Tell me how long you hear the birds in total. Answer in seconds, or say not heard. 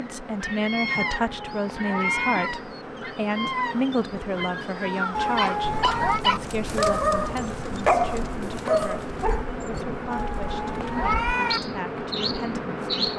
13 s.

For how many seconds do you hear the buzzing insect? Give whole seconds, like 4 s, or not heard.
13 s.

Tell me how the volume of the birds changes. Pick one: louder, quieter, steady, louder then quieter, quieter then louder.
quieter then louder.